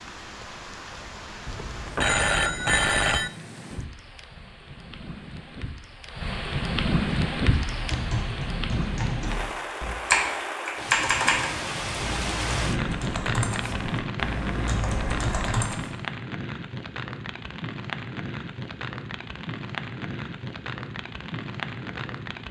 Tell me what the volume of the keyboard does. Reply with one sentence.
The volume of the keyboard goes up, then down.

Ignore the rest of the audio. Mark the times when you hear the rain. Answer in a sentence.
You can hear the rain from 0.0 to 22.4 s.